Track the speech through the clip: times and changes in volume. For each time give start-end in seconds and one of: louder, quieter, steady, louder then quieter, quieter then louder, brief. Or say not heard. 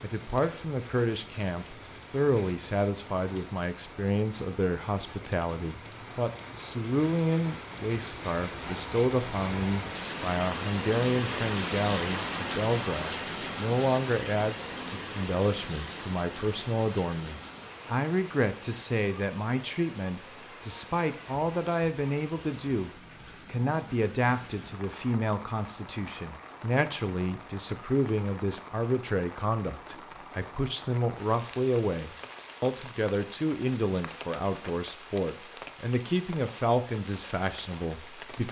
0.0-38.4 steady.